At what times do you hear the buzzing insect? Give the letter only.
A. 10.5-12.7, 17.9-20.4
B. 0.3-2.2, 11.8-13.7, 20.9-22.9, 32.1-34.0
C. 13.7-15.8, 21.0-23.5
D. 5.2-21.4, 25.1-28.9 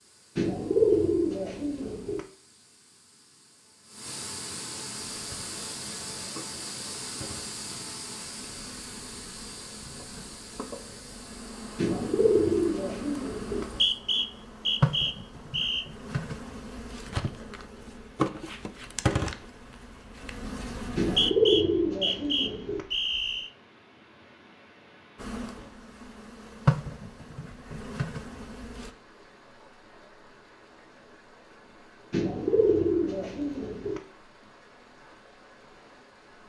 D.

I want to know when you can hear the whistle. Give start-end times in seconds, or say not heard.
13.7-15.8, 21.0-23.5.